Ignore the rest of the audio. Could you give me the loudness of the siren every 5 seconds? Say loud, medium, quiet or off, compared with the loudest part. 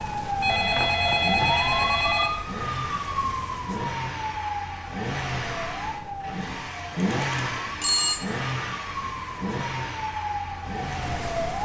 loud, medium, loud.